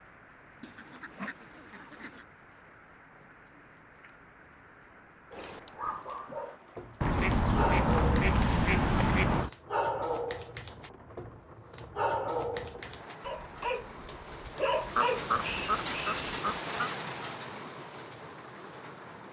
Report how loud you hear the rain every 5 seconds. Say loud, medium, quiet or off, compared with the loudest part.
quiet, quiet, medium, loud.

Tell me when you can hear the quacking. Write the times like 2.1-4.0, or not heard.
0.6-2.2, 7.0-9.5, 14.9-16.9.